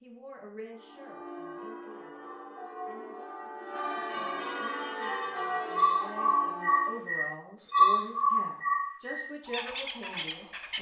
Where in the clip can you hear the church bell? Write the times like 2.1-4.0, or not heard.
0.7-7.1.